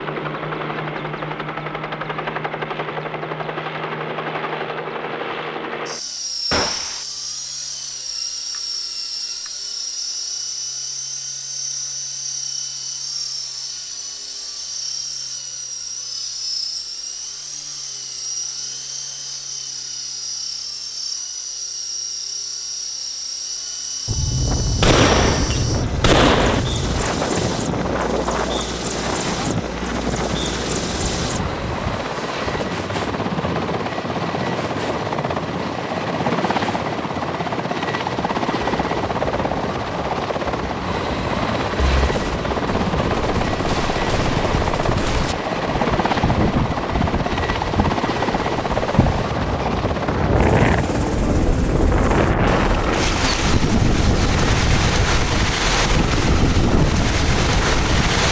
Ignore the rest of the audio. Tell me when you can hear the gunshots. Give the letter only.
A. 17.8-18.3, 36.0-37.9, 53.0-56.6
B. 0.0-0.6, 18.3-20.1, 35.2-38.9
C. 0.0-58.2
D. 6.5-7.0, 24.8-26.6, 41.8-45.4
D.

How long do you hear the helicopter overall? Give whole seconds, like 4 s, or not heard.
58 s.